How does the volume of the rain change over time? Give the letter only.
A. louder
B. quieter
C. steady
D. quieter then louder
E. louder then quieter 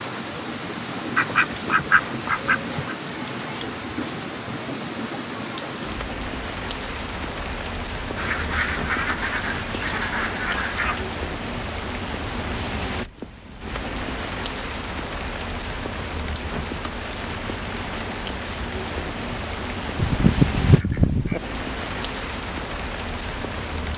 C.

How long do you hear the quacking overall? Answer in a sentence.
You can hear the quacking for 6 seconds altogether.